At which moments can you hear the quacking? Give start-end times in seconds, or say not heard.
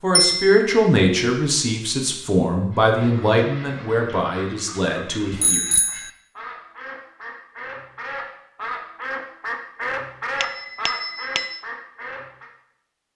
2.7-12.5.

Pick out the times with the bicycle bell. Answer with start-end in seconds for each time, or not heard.
0.1-0.6, 5.3-6.1, 10.4-11.6.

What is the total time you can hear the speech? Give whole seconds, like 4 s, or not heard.
6 s.